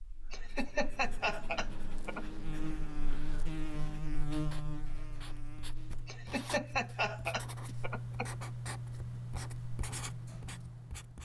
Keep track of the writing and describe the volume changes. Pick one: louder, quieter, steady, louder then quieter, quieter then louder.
louder.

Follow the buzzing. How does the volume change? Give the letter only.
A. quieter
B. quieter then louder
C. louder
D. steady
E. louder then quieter
E.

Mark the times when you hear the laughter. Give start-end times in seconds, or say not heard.
0.3-2.2, 6.0-8.3.